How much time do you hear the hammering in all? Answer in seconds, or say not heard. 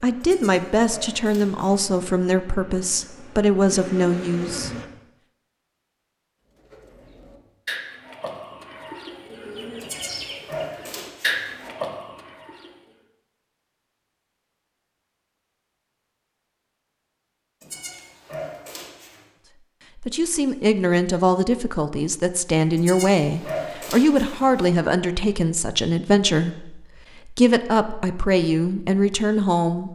not heard.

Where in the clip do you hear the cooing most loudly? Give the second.
11 s.